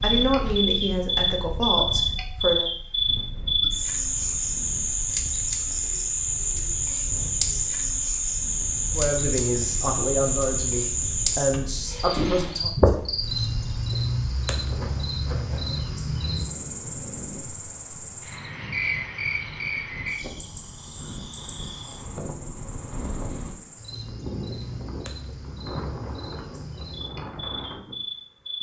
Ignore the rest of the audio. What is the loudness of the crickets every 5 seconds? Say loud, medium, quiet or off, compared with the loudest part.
loud, loud, loud, medium, quiet, quiet.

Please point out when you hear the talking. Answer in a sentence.
The talking can be heard from 0.0 to 2.7 s and from 8.9 to 12.7 s.